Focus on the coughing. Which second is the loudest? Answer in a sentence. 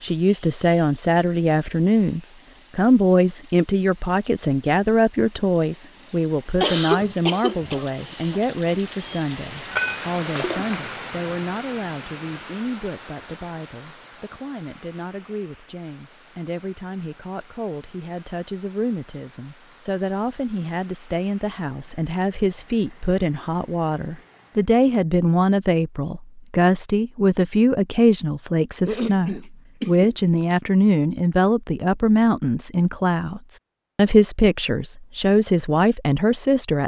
The loudest moment of the coughing is at 7 seconds.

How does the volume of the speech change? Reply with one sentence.
The loudness of the speech goes down, then up.